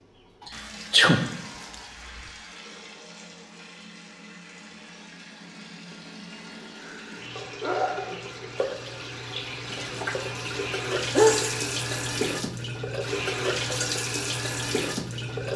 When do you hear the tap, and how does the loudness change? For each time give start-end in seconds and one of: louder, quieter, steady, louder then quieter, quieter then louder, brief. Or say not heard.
0.0-15.5 louder.